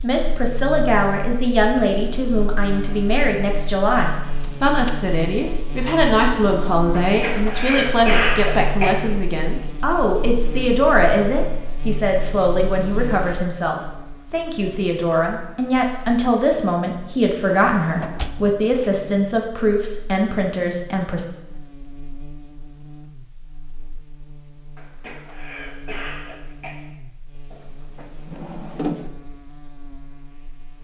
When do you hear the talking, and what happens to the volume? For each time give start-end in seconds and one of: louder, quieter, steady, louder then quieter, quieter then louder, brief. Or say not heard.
0.0-21.2 steady.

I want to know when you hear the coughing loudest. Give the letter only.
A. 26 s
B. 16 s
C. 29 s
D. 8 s
D.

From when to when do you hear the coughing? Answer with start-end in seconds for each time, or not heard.
7.0-8.9, 24.8-26.8.